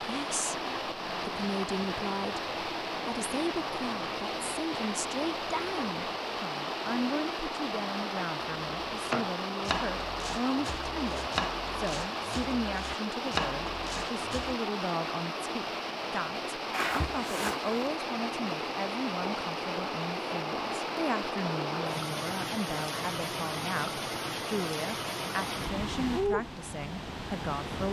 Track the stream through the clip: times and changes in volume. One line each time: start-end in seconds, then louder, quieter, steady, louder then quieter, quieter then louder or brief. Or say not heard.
0.0-27.8 steady.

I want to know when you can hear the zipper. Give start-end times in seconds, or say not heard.
16.7-17.9.